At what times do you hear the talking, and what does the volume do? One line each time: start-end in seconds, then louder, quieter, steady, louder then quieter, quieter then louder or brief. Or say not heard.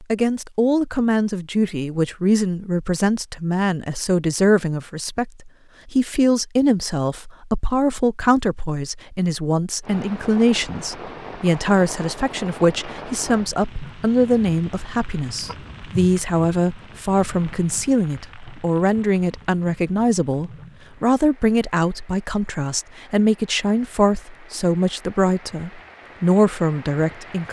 0.0-27.4 steady.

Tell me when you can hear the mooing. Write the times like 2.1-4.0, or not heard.
not heard.